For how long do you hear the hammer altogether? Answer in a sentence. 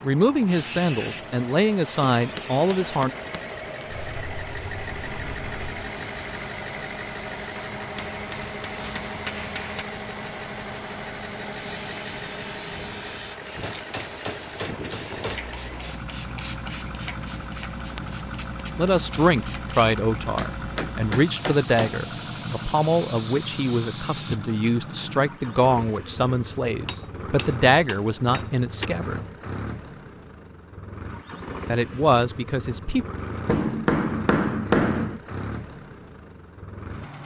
You can hear the hammer for 11 seconds altogether.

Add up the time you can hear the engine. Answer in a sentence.
The engine can be heard for 37 seconds in total.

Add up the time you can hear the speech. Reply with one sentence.
You can hear the speech for 15 seconds altogether.